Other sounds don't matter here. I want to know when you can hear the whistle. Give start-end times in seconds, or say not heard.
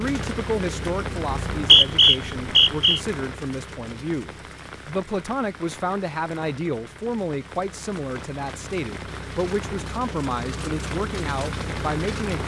1.4-3.0.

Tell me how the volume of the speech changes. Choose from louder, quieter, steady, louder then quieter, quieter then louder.
steady.